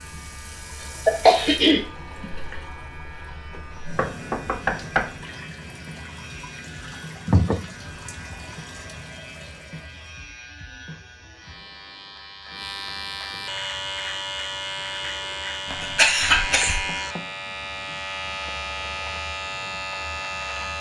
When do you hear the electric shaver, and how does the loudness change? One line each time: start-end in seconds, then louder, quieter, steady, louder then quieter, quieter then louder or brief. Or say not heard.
0.0-20.7 louder.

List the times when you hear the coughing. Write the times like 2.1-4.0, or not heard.
1.1-2.5, 15.7-16.9.